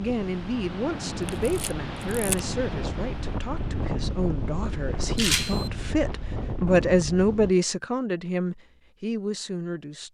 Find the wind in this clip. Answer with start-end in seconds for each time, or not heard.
0.0-7.5.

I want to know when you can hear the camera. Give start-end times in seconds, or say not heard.
1.2-2.4, 5.2-5.7.